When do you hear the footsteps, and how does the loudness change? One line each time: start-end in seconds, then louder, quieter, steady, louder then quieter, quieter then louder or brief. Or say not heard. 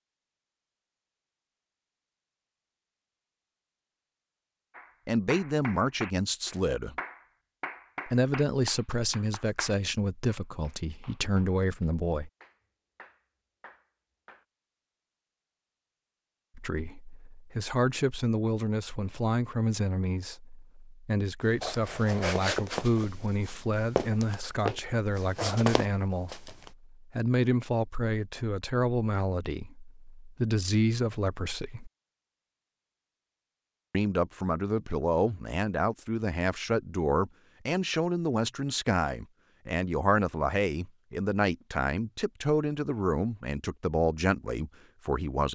21.6-26.7 quieter then louder.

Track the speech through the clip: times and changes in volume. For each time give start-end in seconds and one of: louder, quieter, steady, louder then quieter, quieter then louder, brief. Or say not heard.
5.0-7.0 brief
8.1-12.3 quieter then louder
16.6-31.9 steady
33.9-45.5 steady.